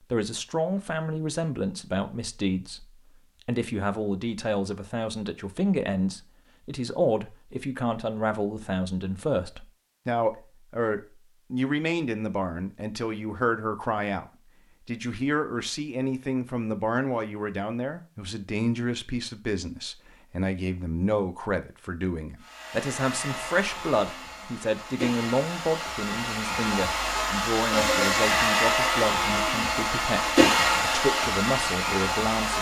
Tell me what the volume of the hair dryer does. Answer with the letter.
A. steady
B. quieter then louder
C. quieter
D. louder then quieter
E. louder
E.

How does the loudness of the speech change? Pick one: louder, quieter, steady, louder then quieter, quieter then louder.
steady.